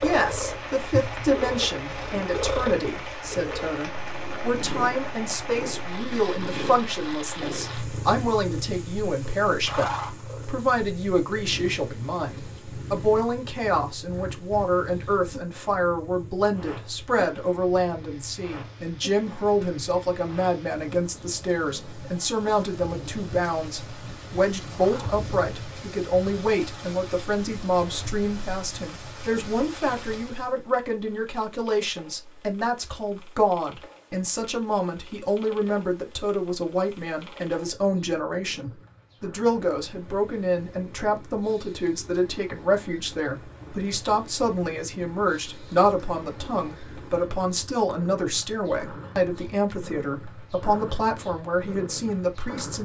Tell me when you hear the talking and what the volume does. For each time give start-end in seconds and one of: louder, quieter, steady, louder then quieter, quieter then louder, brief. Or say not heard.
0.0-52.8 steady.